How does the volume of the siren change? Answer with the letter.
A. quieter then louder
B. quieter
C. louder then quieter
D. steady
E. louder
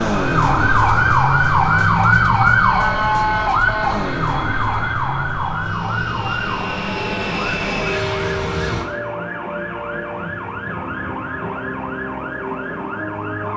B.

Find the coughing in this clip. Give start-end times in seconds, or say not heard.
not heard.